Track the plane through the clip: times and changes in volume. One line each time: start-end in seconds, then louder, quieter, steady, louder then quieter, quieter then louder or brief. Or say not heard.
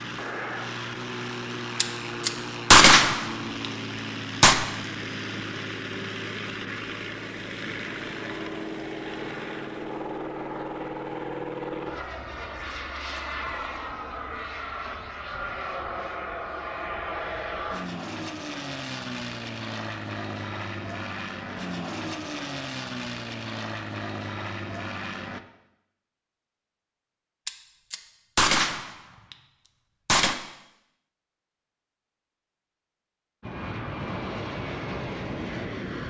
0.0-25.4 steady
33.4-36.0 brief.